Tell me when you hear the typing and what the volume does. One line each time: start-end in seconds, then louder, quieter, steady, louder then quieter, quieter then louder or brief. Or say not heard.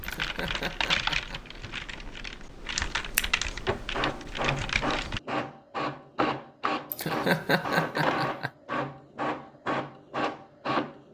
0.0-5.2 quieter then louder.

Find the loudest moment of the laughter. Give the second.
7 s.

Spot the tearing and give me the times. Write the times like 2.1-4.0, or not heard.
not heard.